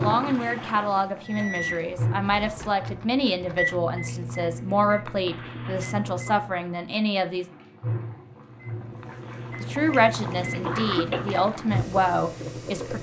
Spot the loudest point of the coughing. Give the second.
11 s.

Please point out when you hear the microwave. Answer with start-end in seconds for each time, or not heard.
1.2-6.8, 8.3-11.6.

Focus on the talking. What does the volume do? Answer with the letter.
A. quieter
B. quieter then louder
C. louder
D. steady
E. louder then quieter
D.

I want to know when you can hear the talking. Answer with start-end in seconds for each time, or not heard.
0.0-7.5, 9.6-12.9.